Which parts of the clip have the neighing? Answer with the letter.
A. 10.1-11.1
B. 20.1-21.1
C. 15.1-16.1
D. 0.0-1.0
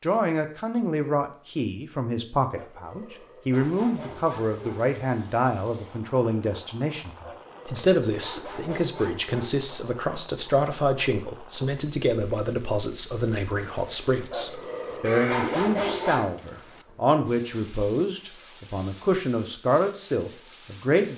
C.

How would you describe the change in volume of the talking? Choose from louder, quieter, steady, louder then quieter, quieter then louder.
steady.